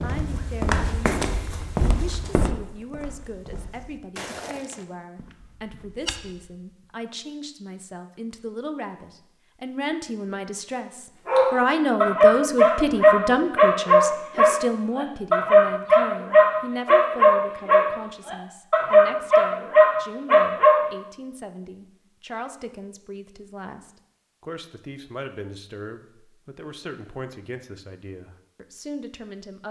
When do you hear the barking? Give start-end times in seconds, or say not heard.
11.2-20.8.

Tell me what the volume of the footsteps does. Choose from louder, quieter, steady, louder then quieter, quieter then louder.
quieter then louder.